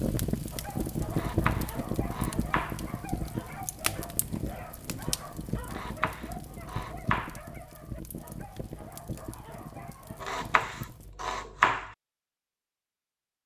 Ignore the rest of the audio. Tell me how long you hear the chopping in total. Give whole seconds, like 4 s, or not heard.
5 s.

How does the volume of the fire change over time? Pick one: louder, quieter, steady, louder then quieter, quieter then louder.
quieter.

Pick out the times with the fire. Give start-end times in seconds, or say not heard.
0.0-11.2.